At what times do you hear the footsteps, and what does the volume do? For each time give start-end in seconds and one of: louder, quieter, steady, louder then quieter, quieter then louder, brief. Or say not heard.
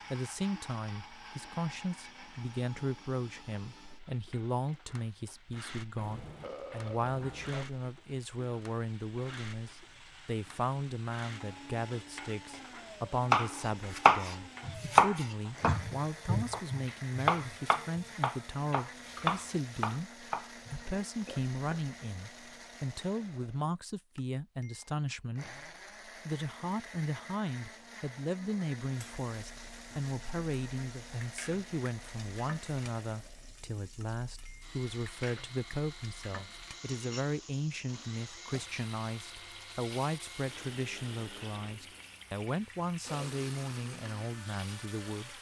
not heard.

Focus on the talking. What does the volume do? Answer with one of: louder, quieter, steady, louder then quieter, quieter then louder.
steady.